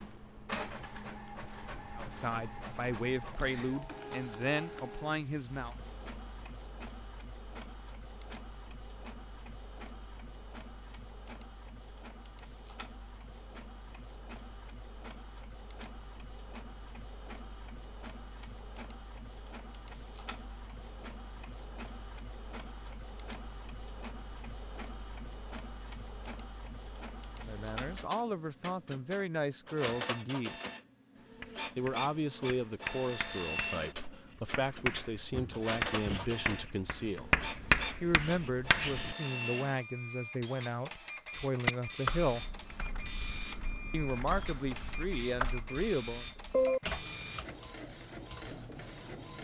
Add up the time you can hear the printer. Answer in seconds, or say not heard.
49 s.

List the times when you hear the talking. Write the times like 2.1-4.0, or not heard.
1.9-5.8, 27.4-30.6, 31.8-42.5, 43.9-46.2.